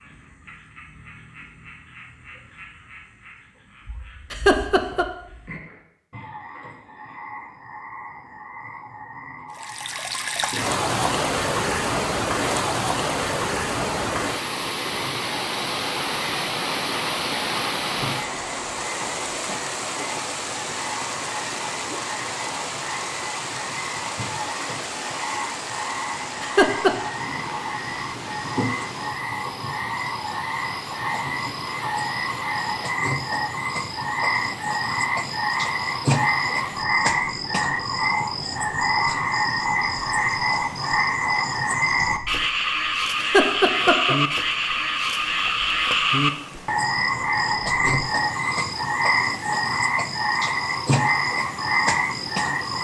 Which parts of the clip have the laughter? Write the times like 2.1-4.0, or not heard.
4.3-5.0, 26.4-26.9, 43.1-44.1.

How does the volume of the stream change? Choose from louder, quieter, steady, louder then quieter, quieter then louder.
quieter.